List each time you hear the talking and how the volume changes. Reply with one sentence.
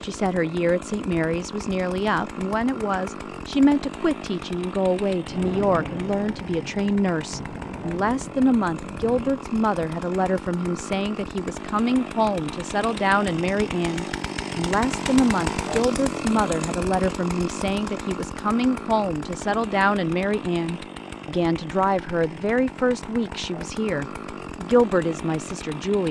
The talking can be heard from 0.0 to 26.0 s, at a steady volume.